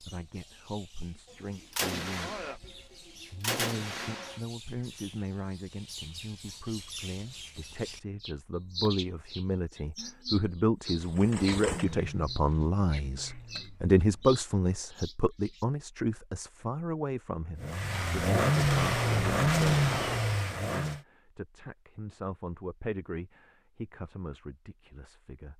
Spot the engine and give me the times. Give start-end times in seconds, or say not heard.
10.8-14.4, 17.6-21.0.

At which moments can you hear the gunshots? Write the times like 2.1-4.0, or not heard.
1.7-2.7, 3.4-4.4, 18.6-20.4.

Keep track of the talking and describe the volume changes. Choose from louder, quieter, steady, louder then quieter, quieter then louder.
louder then quieter.